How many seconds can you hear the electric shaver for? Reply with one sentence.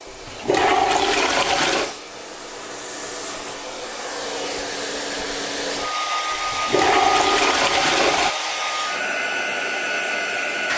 You can't hear the electric shaver here.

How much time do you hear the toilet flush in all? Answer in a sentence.
The toilet flush can be heard for 4 seconds in total.